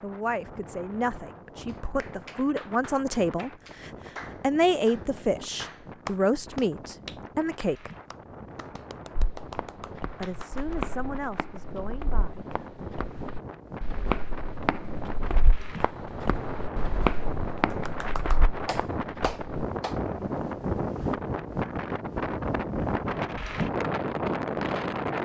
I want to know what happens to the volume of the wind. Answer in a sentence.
The volume of the wind goes up.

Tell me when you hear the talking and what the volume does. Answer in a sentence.
You can hear the talking from 0.0 to 7.9 s, getting louder; and briefly from 10.2 to 12.4 s.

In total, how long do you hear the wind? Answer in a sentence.
The wind can be heard for 25 seconds in total.